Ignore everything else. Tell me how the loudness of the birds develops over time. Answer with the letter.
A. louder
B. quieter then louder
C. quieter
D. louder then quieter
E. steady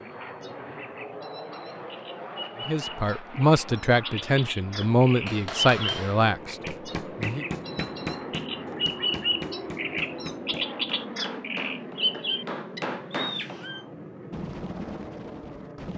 D.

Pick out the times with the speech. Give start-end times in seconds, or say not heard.
2.6-7.5.